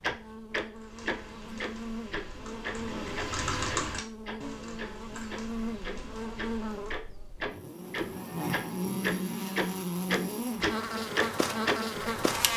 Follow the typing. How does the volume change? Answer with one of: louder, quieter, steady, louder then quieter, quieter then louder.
louder then quieter.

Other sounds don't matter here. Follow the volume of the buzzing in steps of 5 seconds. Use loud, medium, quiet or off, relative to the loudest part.
medium, loud, loud.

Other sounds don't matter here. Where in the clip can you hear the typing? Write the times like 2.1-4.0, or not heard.
0.8-7.0.